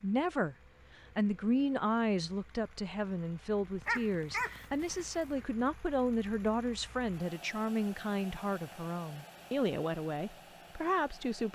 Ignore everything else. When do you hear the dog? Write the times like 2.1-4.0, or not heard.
3.9-5.2.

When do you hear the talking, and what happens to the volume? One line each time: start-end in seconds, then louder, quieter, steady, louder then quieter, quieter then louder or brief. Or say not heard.
0.0-0.6 brief
1.1-11.4 steady.